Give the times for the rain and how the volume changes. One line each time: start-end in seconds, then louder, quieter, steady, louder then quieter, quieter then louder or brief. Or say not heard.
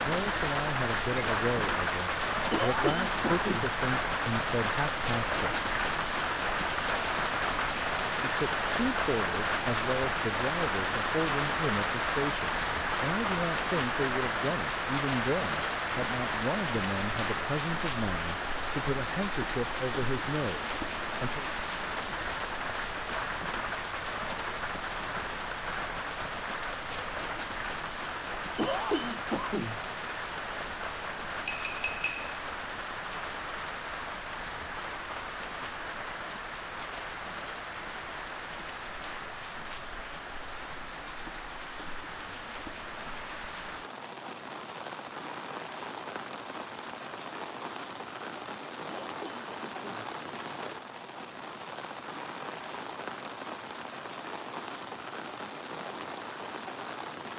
0.0-57.3 quieter.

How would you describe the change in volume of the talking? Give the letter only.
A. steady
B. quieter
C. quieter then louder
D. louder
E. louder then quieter
A.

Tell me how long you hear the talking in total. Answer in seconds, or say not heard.
19 s.